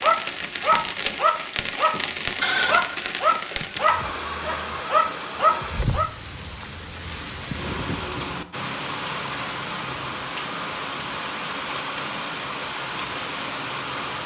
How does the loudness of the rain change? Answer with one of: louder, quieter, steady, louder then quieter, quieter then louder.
steady.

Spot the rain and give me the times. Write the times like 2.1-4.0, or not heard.
0.0-14.2.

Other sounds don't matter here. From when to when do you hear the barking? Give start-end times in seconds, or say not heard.
0.0-6.1.